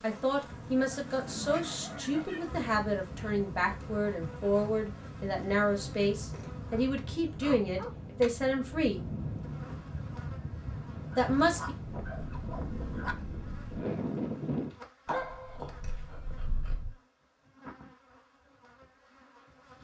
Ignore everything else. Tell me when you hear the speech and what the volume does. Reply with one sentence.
You can hear the speech from 0.0 to 9.1 s, at a steady volume; and briefly from 11.2 to 11.8 s.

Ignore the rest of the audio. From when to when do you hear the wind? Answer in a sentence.
You can hear the wind from 0.1 to 14.7 s.